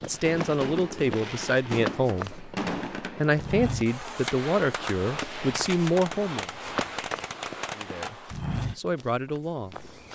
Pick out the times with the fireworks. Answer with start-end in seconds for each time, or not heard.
0.0-8.4.